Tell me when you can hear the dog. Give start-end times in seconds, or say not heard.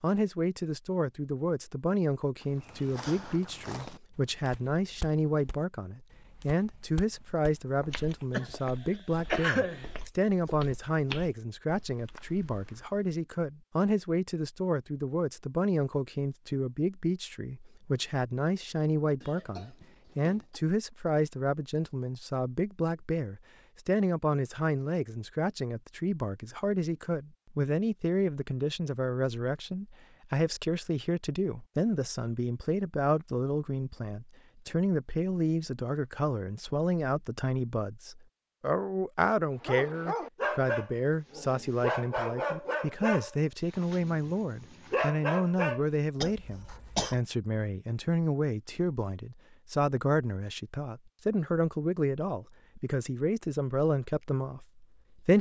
39.6-45.9.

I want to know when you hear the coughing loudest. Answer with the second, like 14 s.
9 s.